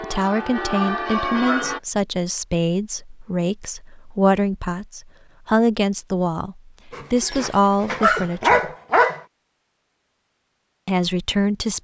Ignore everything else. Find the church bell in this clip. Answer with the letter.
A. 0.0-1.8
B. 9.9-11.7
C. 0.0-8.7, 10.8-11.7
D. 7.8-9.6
A.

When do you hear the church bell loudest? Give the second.
1 s.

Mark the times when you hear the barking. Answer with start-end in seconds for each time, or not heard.
0.3-1.8, 6.9-9.2.